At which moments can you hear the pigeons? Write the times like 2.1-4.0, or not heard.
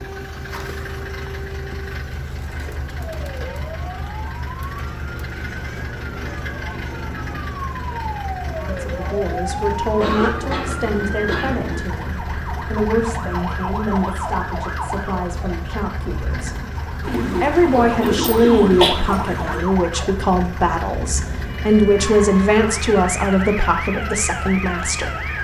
17.0-19.7.